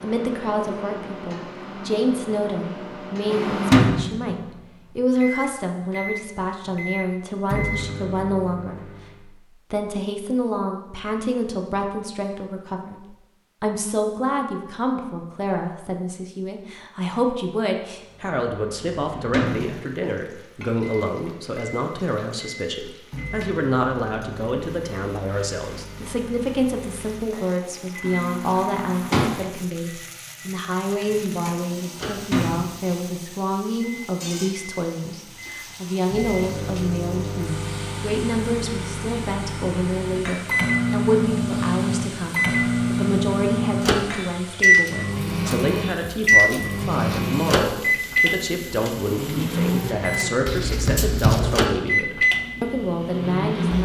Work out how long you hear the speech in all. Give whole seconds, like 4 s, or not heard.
53 s.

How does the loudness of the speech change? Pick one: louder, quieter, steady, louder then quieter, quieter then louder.
steady.